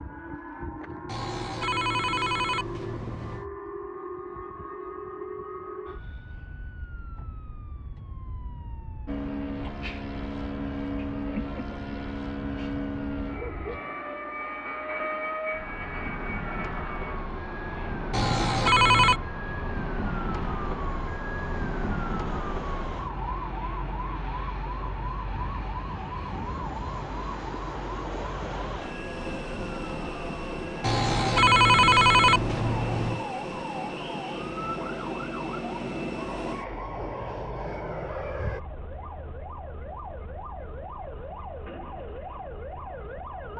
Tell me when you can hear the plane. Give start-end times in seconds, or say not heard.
9.1-38.6.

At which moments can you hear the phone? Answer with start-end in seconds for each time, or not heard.
1.1-3.5, 18.1-19.2, 30.8-33.2.